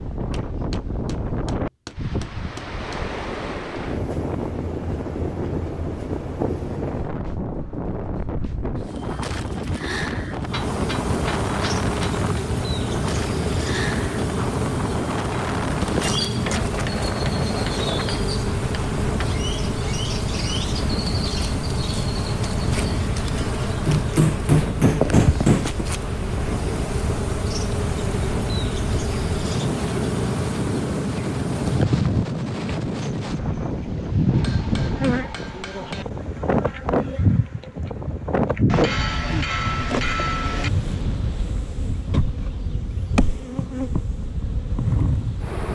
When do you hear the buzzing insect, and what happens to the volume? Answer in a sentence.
You can hear the buzzing insect from 10.4 to 45.6 s, at a steady volume.